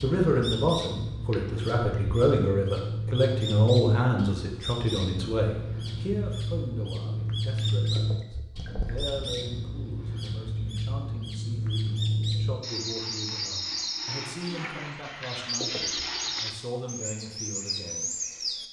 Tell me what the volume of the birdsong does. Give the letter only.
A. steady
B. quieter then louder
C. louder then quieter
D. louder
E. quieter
A.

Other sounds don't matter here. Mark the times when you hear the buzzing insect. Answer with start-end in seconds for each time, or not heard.
not heard.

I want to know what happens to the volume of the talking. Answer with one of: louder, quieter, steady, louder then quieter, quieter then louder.
quieter.